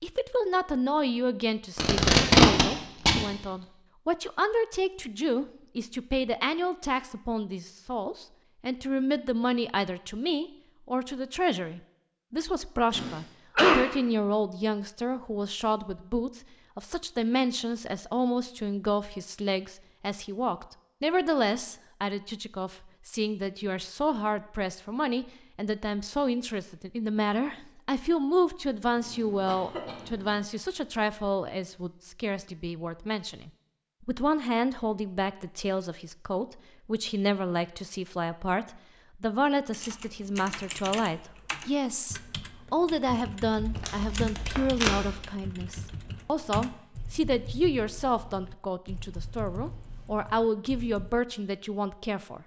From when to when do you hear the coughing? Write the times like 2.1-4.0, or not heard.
12.9-13.8, 28.9-30.4.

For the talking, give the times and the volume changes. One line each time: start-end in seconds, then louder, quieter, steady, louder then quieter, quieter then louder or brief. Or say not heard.
0.0-52.4 steady.